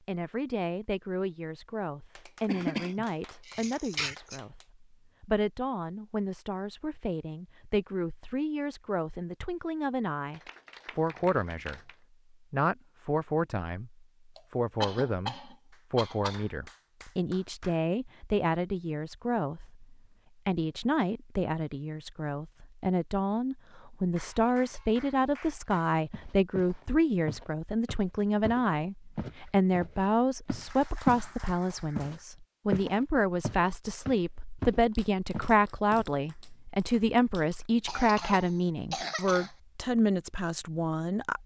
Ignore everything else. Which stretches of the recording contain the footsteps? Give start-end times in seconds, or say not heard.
26.1-31.2, 31.9-36.0.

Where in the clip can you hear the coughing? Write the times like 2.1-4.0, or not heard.
2.5-4.4, 14.3-16.4, 37.9-39.5.